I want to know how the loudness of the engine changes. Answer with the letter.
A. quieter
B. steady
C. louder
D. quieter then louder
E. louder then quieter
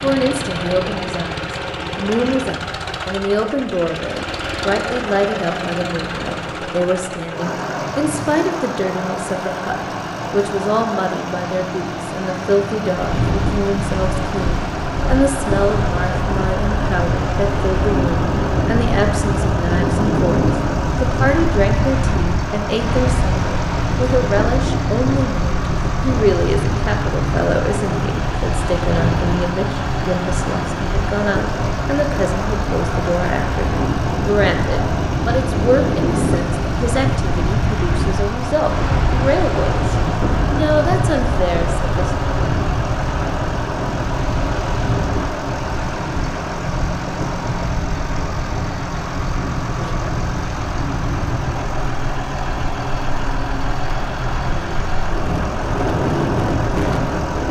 B.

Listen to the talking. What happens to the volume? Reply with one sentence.
The volume of the talking stays about the same.